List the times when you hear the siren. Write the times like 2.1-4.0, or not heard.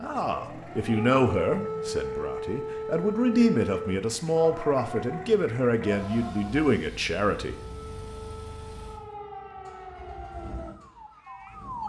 0.0-11.8.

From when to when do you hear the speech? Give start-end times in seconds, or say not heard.
0.0-7.5.